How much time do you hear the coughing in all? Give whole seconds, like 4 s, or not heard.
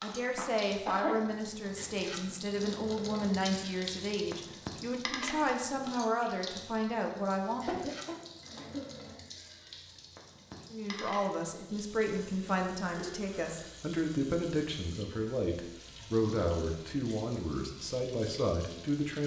3 s.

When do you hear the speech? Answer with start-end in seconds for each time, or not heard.
0.0-7.8, 10.7-19.2.